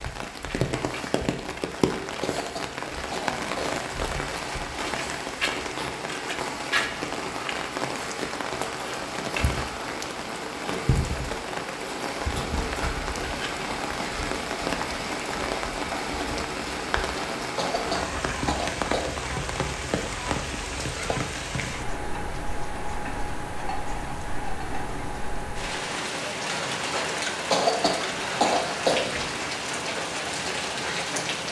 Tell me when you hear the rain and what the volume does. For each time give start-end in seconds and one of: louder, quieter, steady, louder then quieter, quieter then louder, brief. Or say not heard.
0.0-31.4 steady.